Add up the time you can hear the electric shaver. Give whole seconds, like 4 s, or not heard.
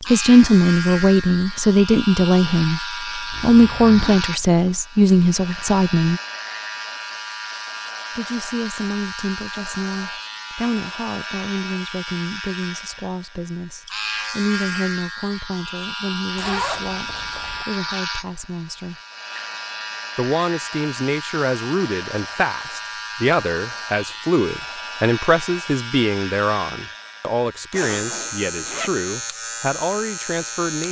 31 s.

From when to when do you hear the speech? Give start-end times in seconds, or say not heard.
0.1-6.2, 8.2-18.9, 20.1-30.8.